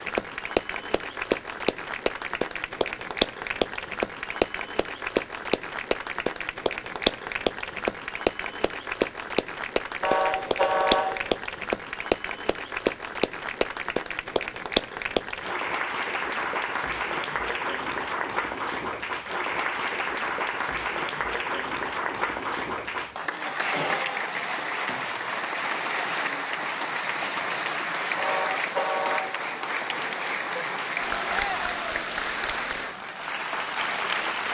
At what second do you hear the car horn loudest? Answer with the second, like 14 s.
11 s.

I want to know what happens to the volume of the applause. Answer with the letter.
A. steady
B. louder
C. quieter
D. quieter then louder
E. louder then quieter
A.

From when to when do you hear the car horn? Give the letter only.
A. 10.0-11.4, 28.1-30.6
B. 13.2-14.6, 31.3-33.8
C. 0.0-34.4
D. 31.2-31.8
A.